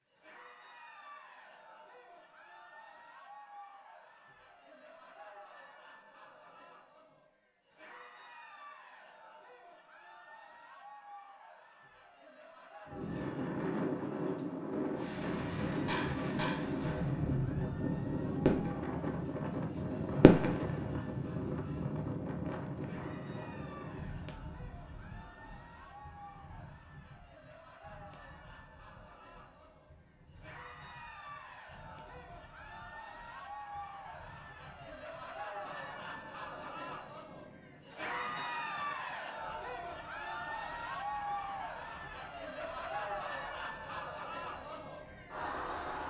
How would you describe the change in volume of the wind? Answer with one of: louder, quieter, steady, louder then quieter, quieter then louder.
quieter.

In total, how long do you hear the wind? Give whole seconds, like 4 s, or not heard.
33 s.